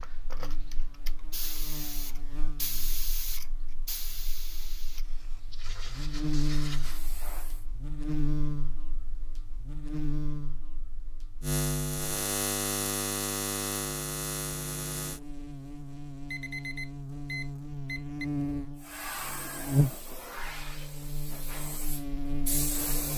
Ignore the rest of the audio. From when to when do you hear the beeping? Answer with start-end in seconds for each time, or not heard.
16.3-18.3.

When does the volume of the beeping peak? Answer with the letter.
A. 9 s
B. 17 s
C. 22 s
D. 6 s
B.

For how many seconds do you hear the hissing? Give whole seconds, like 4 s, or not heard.
12 s.